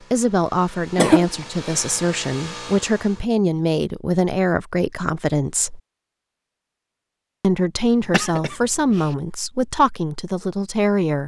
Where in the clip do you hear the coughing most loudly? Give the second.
1 s.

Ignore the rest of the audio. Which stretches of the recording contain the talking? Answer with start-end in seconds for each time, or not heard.
0.1-5.8, 7.4-11.2.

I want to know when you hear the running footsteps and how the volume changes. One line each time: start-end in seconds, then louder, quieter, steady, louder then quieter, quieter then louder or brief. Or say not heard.
not heard.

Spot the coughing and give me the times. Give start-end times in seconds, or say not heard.
0.9-1.9, 8.0-9.2.